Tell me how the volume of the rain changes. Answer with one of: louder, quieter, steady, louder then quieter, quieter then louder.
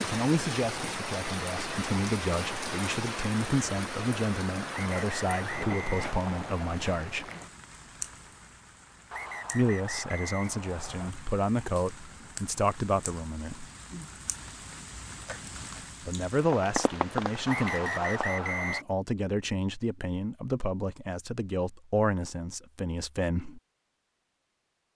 quieter then louder.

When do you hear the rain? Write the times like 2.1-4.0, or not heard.
0.0-18.4.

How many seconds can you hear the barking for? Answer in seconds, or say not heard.
not heard.